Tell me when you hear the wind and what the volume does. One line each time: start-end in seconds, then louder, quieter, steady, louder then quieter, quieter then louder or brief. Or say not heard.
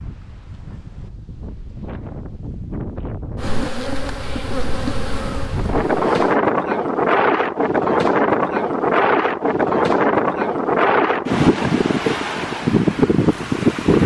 0.0-14.0 louder.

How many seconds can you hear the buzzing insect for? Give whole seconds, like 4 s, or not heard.
3 s.